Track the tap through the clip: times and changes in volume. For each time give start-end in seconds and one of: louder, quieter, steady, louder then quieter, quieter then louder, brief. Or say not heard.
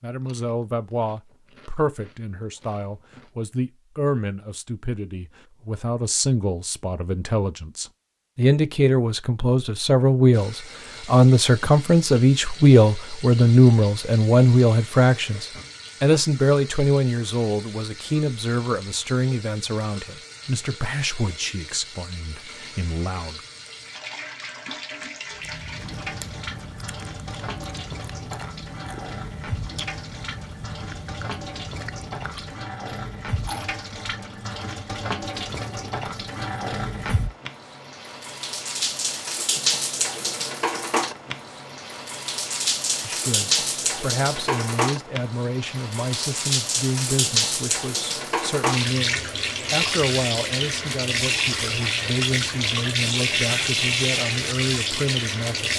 10.3-55.7 louder.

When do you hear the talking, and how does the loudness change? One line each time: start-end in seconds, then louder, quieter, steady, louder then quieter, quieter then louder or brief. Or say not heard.
0.0-23.4 louder then quieter
43.0-55.7 steady.